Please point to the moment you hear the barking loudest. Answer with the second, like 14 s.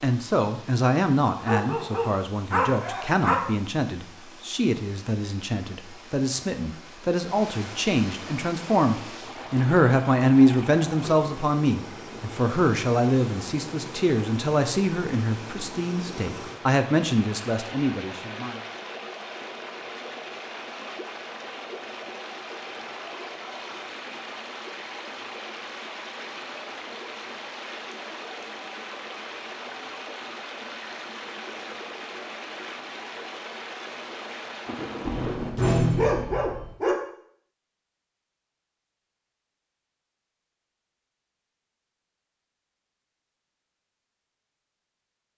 36 s.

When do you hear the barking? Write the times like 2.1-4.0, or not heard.
1.4-3.4, 35.0-37.0.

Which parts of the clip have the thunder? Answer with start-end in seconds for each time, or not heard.
34.6-35.8.